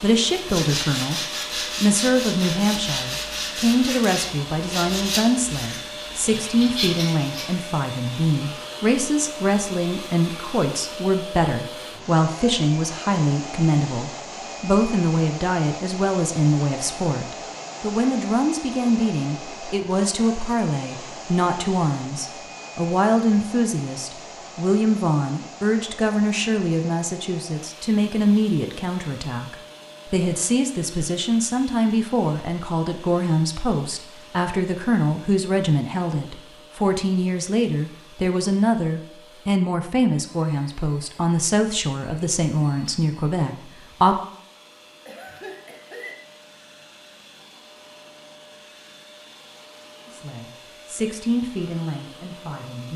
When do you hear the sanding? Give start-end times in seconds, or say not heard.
0.3-7.5.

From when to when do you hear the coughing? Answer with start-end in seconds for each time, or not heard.
45.0-46.1.